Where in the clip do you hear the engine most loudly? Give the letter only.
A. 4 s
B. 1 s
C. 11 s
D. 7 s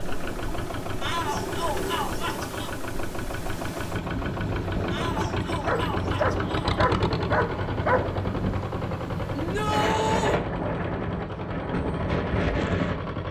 D.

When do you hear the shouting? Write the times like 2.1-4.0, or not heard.
1.0-2.7, 4.9-6.8, 9.3-10.4.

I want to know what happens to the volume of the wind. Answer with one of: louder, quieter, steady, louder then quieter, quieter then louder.
louder.